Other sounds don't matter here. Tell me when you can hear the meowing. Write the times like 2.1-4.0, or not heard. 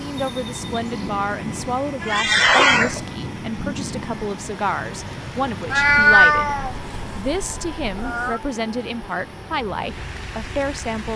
2.0-3.0, 5.7-8.4.